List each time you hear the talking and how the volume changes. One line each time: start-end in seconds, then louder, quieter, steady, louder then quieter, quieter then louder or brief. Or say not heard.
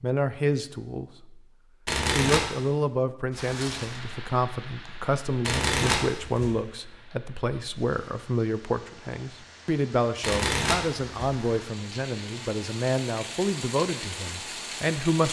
0.0-1.4 brief
2.0-15.2 steady.